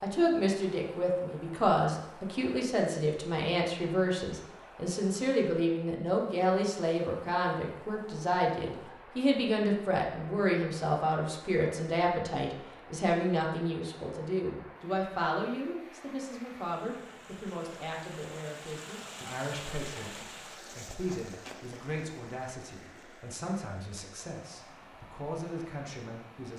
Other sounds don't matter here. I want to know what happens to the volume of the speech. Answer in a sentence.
The volume of the speech goes down.